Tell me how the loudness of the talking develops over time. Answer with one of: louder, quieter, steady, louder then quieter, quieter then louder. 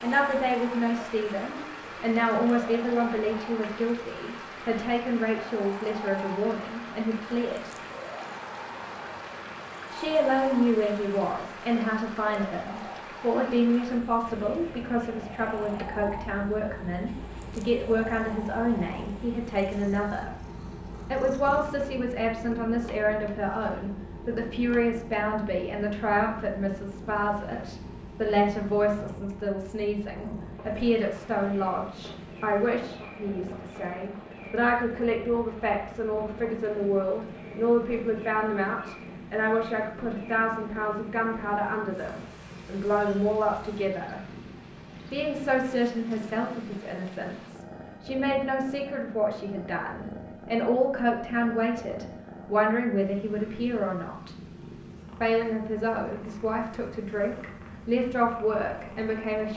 steady.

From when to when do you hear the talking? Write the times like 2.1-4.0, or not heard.
0.0-7.7, 9.9-20.4, 21.1-44.2, 45.1-54.4, 55.2-59.5.